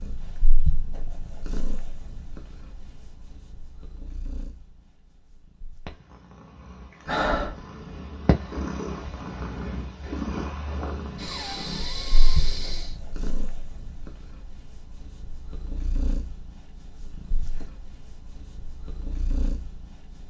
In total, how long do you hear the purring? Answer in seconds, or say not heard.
20 s.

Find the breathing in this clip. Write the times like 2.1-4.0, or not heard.
7.0-7.7, 11.2-13.1.